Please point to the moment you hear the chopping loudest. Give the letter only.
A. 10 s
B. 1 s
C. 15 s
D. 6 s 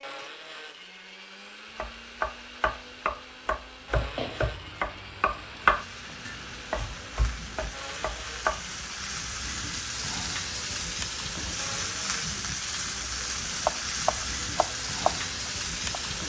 D.